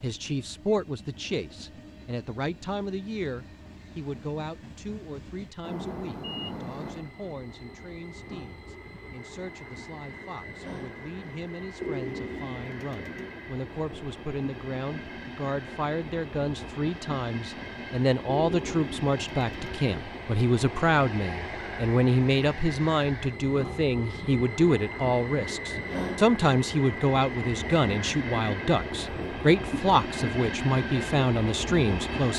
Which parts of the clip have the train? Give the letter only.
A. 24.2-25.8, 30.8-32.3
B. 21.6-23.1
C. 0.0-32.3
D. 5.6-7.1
C.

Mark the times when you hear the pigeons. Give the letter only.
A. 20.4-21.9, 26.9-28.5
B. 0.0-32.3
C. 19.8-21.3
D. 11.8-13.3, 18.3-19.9
D.